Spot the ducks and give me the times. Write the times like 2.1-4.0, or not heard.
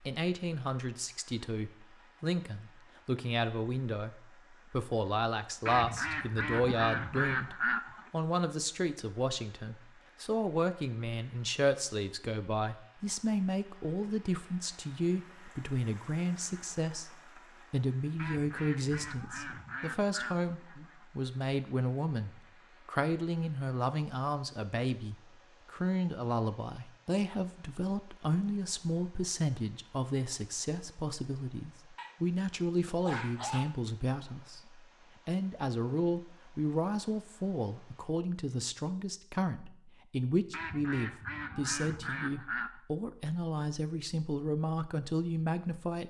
5.7-8.1, 18.1-21.1, 40.5-42.7.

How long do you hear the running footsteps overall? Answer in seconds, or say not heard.
not heard.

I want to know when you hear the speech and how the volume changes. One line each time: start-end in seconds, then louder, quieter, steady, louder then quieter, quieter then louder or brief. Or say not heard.
0.0-46.0 steady.